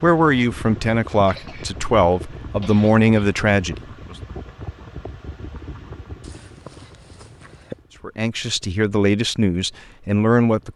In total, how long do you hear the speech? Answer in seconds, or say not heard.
7 s.